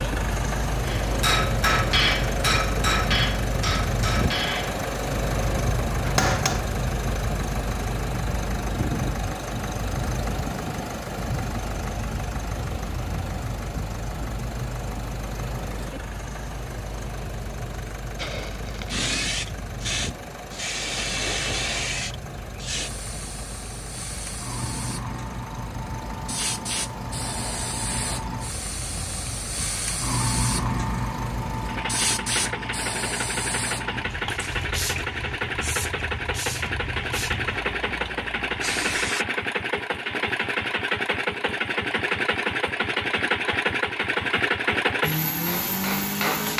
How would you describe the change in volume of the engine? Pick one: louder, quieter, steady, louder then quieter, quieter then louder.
quieter then louder.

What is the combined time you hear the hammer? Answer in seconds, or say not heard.
7 s.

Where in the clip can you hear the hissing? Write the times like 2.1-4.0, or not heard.
18.1-39.2.